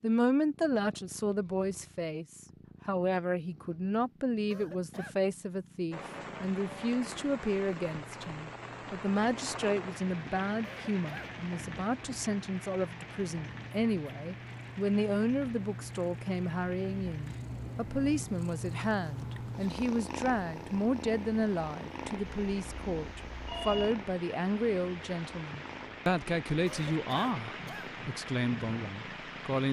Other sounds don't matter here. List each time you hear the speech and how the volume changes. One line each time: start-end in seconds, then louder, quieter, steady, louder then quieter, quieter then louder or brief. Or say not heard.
0.0-29.6 steady.